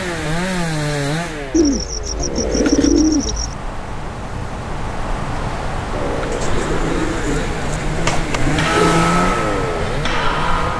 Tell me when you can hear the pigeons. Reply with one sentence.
You can hear the pigeons from 1.5 to 3.5 s and from 6.3 to 9.1 s.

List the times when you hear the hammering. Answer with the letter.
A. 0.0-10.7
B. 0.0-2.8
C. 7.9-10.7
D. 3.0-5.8
C.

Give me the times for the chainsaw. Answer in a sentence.
The chainsaw can be heard from 0.0 to 2.9 s and from 5.9 to 10.7 s.